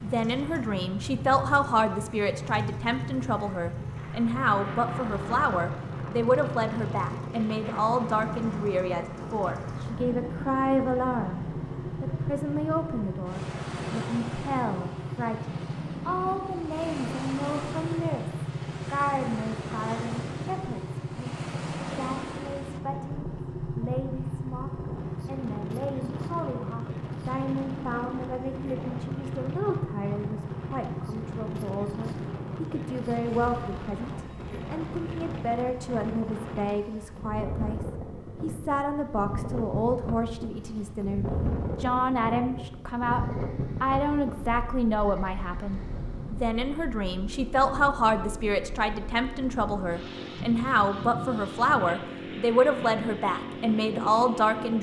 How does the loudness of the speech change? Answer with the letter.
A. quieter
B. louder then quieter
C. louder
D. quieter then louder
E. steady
D.